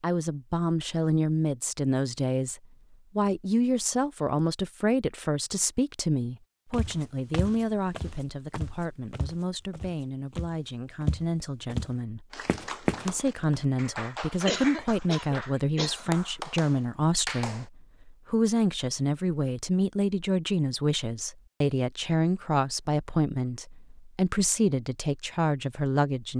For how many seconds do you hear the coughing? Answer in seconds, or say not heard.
2 s.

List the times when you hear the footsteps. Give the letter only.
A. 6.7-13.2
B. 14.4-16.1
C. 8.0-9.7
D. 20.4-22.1
A.